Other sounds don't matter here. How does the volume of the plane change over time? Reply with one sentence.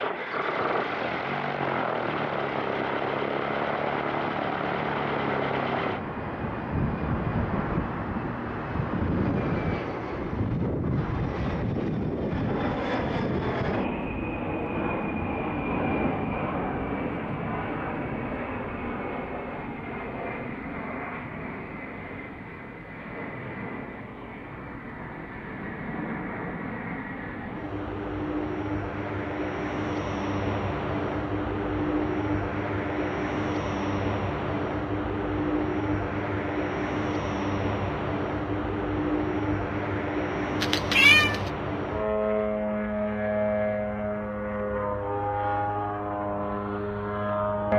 The loudness of the plane goes down, then up.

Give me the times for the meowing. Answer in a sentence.
You can hear the meowing from 40.6 to 41.5 s.